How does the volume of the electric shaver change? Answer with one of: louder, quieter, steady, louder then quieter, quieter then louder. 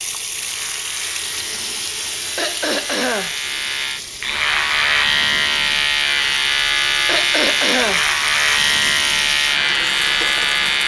louder.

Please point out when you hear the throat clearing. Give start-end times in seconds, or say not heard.
2.4-3.4, 7.0-8.1.